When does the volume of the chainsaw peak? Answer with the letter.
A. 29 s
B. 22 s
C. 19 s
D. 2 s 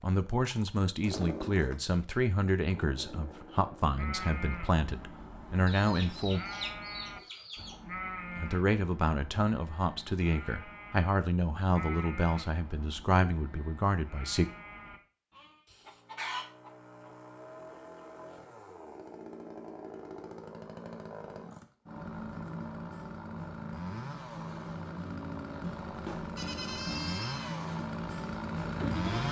A.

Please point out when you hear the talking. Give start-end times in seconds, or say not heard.
0.0-6.4, 8.3-14.4.